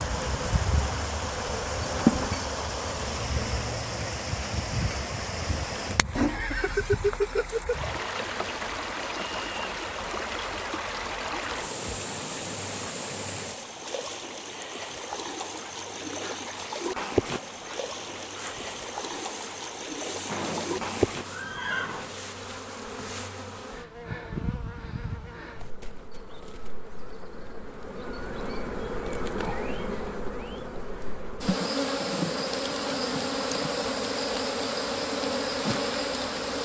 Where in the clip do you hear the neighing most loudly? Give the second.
7 s.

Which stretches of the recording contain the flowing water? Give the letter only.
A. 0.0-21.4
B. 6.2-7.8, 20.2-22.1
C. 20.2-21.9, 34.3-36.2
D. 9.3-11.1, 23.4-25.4
A.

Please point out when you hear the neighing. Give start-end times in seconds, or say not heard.
6.2-7.8, 20.2-22.1.